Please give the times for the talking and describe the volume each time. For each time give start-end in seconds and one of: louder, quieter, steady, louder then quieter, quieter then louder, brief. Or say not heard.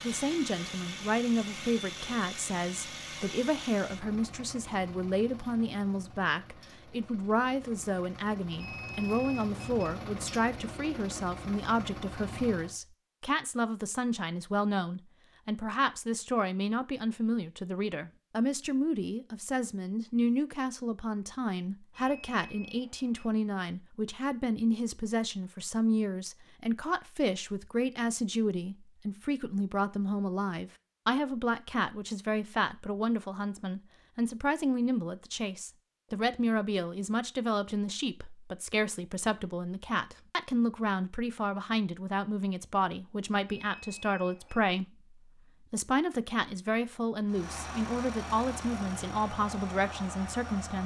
0.0-50.8 steady.